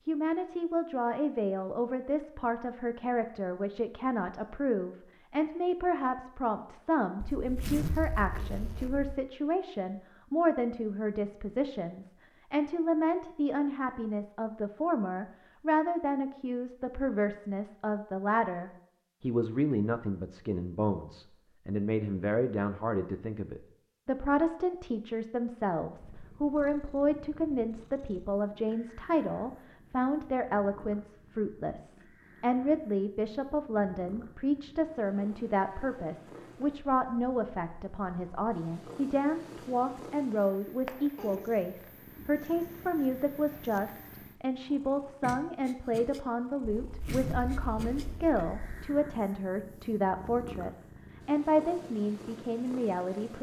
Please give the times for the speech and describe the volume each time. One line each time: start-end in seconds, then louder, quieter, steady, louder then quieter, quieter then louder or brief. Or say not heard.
0.1-53.3 steady.